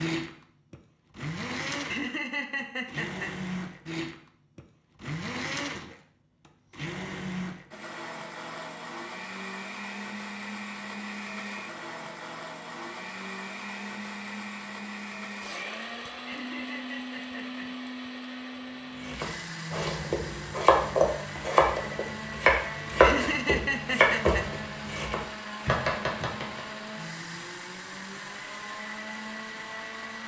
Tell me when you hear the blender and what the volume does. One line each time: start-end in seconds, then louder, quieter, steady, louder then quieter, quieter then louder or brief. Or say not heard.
0.0-30.2 steady.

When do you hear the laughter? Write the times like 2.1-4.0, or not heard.
1.9-3.4, 16.2-17.7, 23.0-24.4.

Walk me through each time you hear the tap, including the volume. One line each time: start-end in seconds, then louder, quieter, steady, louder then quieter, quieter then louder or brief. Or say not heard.
not heard.